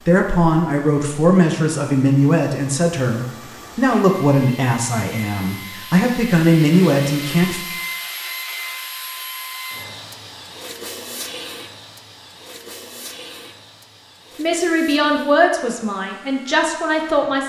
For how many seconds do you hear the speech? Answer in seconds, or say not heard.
11 s.